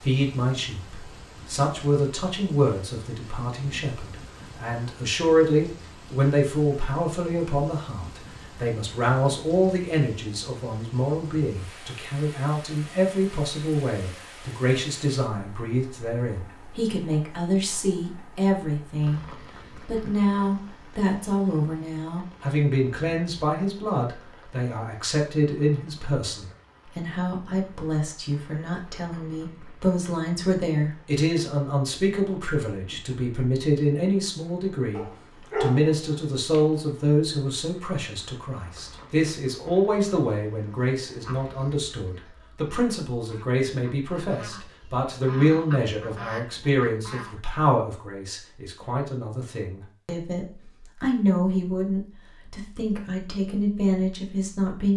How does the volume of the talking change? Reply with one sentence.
The loudness of the talking stays about the same.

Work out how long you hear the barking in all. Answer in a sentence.
You can hear the barking for 2 seconds altogether.